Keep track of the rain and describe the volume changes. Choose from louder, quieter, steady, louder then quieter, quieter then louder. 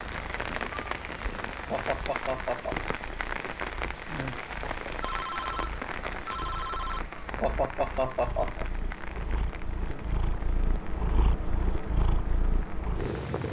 quieter.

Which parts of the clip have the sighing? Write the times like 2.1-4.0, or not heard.
1.7-2.8, 7.4-8.7.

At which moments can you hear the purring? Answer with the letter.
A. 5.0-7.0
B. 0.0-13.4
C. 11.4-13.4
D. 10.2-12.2
B.